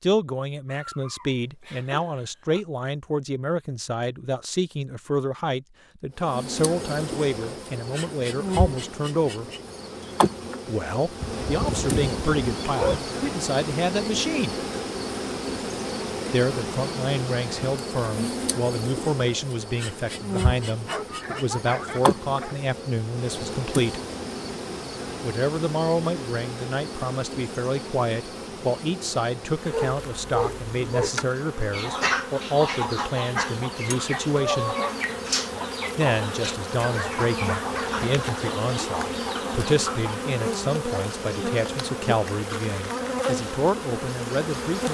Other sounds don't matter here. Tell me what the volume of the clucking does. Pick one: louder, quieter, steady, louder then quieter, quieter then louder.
quieter.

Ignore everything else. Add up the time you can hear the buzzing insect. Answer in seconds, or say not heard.
39 s.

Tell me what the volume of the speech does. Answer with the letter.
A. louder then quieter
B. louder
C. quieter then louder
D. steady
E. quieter
D.